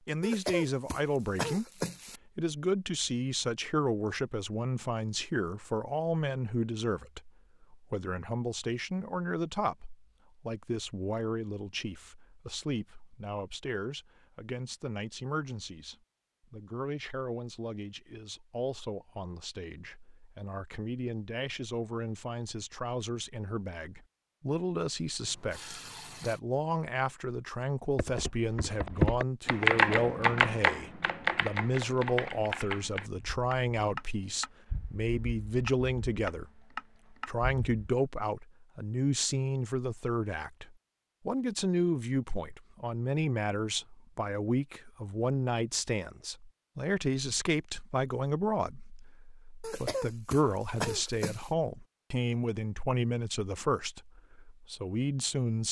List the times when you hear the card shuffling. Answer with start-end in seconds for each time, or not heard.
not heard.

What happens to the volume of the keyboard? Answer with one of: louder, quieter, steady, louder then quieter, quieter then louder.
quieter.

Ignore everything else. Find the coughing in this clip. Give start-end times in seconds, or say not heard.
0.2-2.2, 49.6-51.5.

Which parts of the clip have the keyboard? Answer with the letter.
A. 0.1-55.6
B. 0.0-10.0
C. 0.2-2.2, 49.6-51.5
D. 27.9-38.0
D.